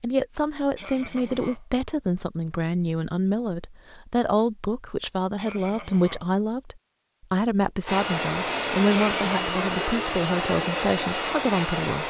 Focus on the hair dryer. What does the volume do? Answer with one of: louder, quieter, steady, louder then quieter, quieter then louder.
steady.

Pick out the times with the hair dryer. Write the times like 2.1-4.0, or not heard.
7.8-12.0.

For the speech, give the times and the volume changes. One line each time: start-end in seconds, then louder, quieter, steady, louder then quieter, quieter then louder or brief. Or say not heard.
0.0-12.0 steady.